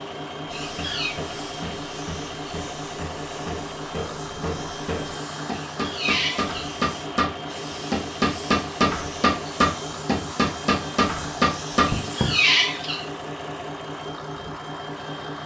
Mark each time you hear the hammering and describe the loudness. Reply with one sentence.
The hammering can be heard from 0.7 to 12.3 s, getting louder.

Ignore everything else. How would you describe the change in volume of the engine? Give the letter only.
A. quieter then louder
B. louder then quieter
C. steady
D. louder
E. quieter
C.